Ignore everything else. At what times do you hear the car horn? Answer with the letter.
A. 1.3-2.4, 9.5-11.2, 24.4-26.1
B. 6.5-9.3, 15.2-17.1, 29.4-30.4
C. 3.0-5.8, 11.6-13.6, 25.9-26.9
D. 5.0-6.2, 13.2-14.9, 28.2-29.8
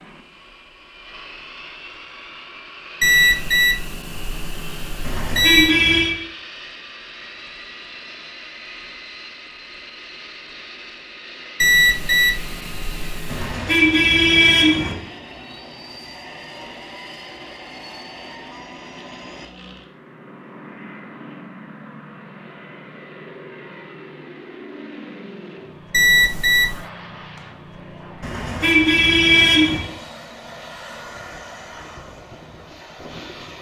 D.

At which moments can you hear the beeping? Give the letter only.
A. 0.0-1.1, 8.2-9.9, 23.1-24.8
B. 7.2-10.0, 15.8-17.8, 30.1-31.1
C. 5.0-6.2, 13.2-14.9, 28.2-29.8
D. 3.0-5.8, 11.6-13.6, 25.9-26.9
D.